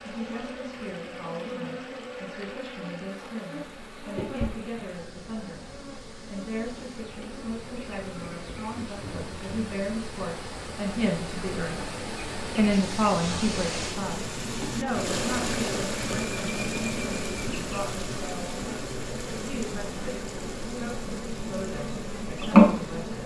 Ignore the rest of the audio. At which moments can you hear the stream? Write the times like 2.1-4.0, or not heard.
0.0-23.2.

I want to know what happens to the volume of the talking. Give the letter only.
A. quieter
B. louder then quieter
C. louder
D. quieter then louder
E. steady
B.